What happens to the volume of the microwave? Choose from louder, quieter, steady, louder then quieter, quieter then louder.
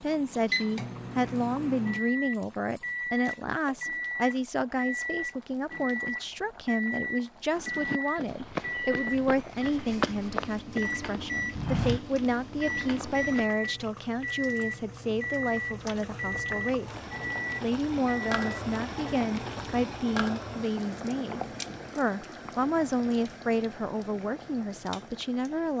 steady.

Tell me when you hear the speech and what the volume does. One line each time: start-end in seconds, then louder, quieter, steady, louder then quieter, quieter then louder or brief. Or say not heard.
0.0-25.7 steady.